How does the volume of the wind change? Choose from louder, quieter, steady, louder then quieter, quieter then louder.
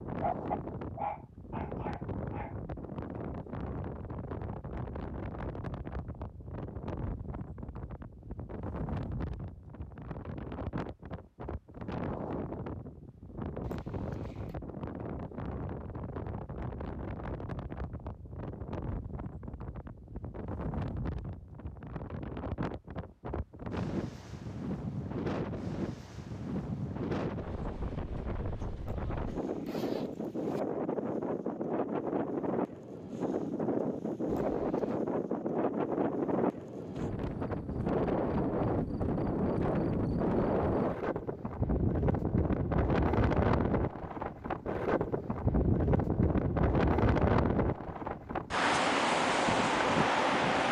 louder.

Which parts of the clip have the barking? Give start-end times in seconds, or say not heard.
0.2-2.5.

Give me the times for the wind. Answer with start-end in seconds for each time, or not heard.
0.0-50.6.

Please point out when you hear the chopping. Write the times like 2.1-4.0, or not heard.
not heard.